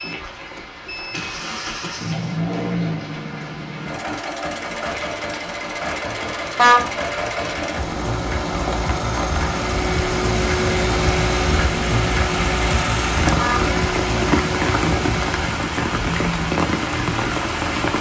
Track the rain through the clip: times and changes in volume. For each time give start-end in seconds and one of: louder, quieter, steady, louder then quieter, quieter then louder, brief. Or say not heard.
0.0-17.9 louder.